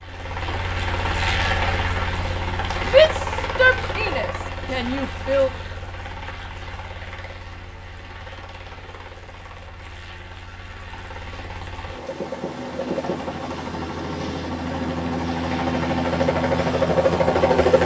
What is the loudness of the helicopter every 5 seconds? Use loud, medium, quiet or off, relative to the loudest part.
medium, quiet, medium, loud.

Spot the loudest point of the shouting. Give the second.
3 s.